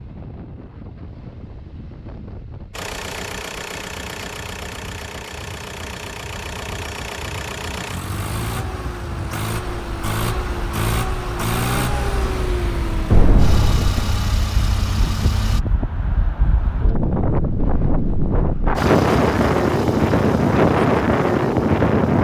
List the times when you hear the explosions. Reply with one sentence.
You can hear the explosions from 13.1 to 14.3 s.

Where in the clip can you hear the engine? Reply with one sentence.
The engine can be heard from 2.7 to 15.6 s and from 18.8 to 22.1 s.